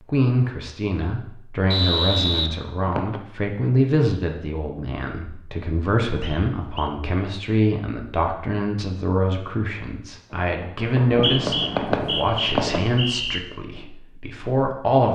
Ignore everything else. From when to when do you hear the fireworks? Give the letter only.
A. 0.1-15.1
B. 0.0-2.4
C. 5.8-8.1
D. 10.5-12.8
D.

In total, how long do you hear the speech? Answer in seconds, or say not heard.
15 s.